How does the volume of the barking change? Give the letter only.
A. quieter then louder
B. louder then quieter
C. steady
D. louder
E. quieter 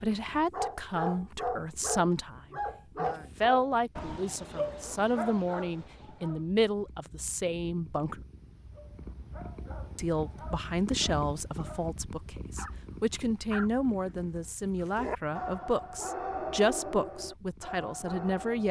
A.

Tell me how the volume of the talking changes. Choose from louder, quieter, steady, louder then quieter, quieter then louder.
steady.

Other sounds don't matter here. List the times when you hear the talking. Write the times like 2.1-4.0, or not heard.
0.0-8.2, 9.9-18.6.